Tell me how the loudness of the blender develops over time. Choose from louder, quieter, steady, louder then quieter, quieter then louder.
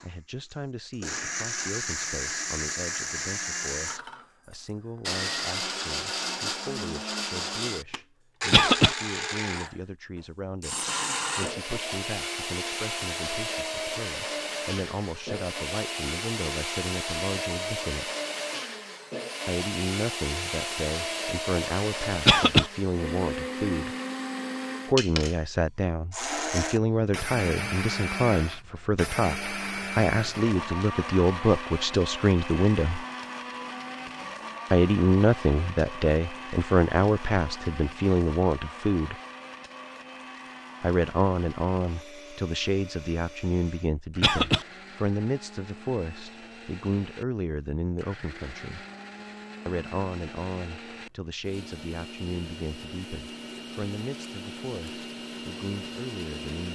quieter.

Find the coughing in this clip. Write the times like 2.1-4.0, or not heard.
8.5-8.9, 22.2-22.7, 44.2-44.6.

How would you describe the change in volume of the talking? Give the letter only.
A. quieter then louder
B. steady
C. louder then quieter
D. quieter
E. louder
C.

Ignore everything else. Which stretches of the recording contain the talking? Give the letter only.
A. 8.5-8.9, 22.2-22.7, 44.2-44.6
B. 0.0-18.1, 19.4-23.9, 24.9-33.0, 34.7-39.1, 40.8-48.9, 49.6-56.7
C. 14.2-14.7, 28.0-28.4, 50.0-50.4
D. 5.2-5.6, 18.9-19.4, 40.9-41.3
B.